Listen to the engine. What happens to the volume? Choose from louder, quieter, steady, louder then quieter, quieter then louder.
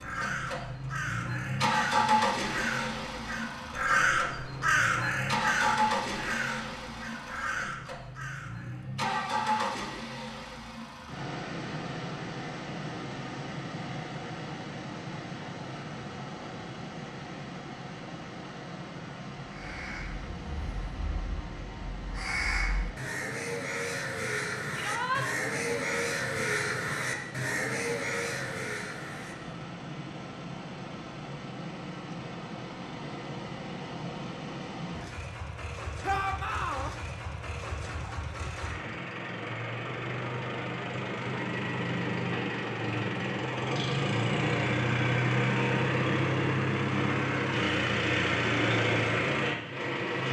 quieter then louder.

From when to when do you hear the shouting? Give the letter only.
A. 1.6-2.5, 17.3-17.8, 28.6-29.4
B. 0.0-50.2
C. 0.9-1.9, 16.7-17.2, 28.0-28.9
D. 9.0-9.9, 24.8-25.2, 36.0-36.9
D.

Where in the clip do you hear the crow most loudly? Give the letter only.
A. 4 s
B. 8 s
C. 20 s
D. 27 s
A.